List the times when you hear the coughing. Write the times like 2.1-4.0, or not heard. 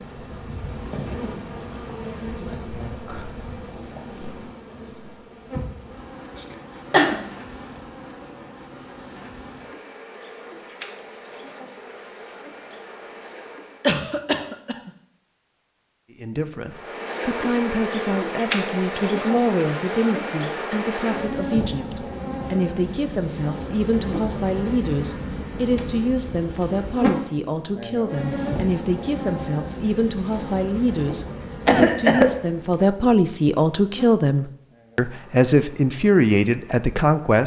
6.3-7.2, 13.8-14.9, 31.6-32.4.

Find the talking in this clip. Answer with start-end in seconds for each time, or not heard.
16.2-37.4.